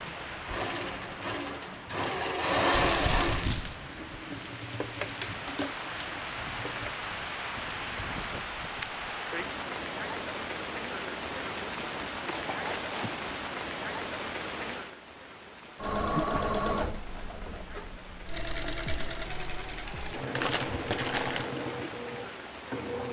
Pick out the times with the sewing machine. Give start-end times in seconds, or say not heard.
0.0-7.0, 15.8-23.0.